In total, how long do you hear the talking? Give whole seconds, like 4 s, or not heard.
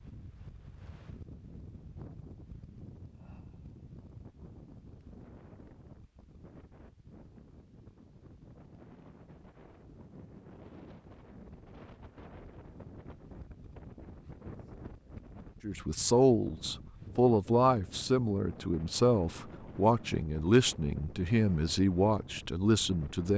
8 s.